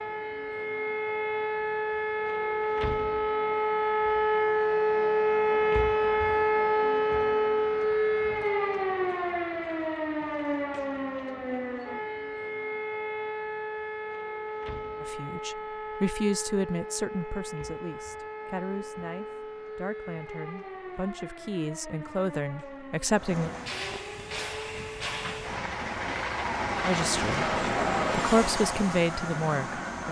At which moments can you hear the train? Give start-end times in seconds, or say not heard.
23.1-30.0.